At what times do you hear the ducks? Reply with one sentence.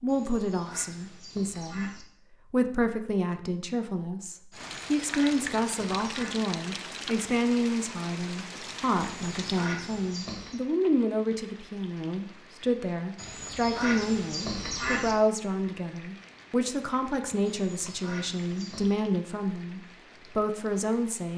You can hear the ducks from 0.1 to 2.0 s, from 4.5 to 6.3 s, from 9.1 to 10.6 s, from 13.2 to 15.2 s and from 17.4 to 19.0 s.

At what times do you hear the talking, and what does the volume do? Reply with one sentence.
You can hear the talking from 0.0 to 21.3 s, at a steady volume.